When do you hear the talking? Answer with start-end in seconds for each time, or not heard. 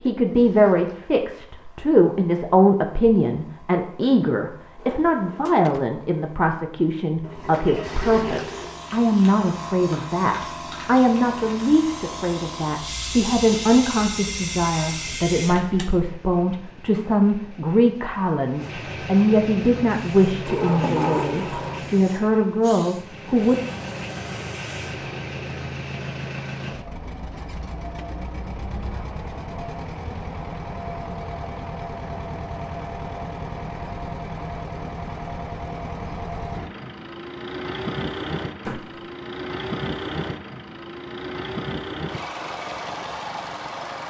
0.0-23.6.